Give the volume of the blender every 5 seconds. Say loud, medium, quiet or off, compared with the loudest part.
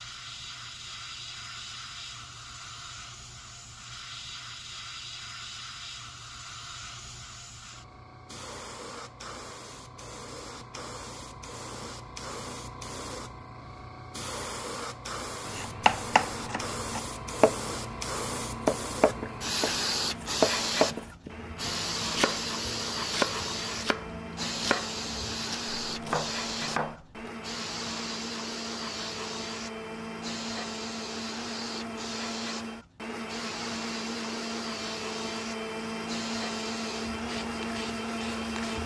off, off, off, medium, medium, medium, loud, loud.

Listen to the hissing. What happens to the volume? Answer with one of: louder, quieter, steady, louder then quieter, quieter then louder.
louder then quieter.